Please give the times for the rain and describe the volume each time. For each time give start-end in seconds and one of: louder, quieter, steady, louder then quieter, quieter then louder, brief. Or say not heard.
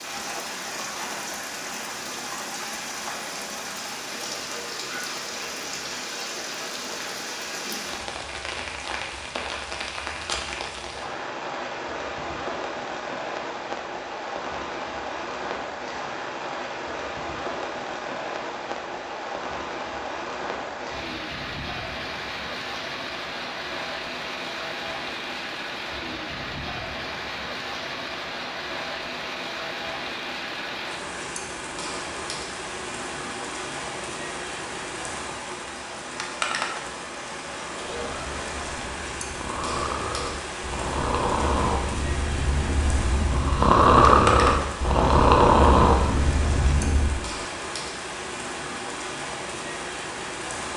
0.0-50.7 steady.